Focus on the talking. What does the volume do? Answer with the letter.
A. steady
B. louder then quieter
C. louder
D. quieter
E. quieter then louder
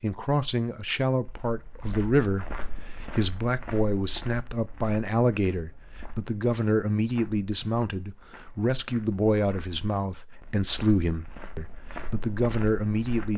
A.